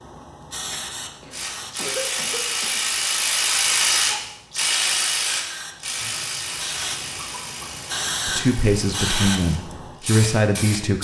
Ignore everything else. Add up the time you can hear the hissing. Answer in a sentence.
You can hear the hissing for 11 seconds altogether.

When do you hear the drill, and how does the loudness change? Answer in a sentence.
You can't hear the drill here.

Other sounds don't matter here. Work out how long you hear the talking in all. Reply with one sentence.
The talking can be heard for 3 seconds in total.